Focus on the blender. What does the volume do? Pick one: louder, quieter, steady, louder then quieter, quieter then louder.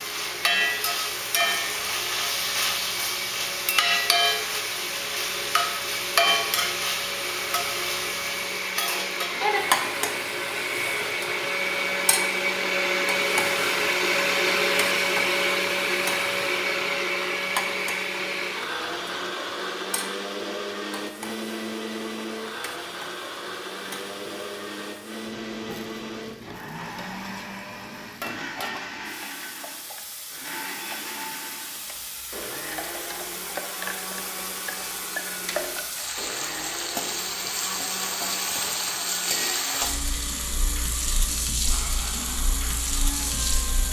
louder then quieter.